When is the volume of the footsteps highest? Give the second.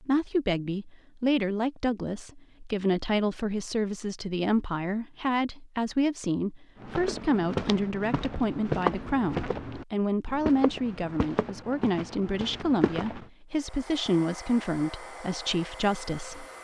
9 s.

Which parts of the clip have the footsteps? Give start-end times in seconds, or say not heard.
6.8-13.2.